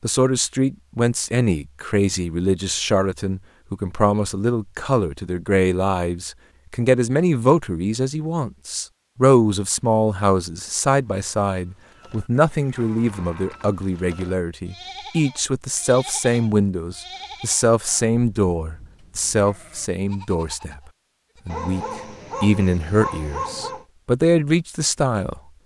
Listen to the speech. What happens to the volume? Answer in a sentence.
The volume of the speech stays about the same.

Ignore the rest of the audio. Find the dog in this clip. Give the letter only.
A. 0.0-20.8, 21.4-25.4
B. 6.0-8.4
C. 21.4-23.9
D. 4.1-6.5
C.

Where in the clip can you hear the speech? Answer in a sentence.
You can hear the speech from 0.0 to 20.8 s and from 21.4 to 25.4 s.